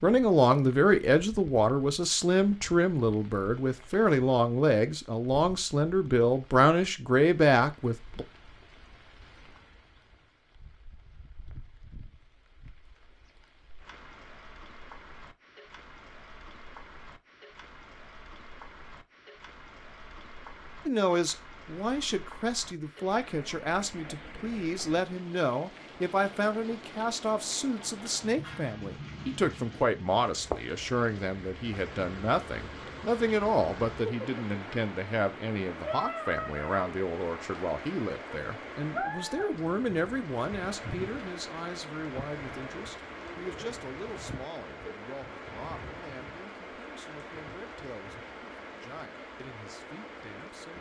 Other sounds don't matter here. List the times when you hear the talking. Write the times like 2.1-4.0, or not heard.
0.0-8.2, 20.9-50.7.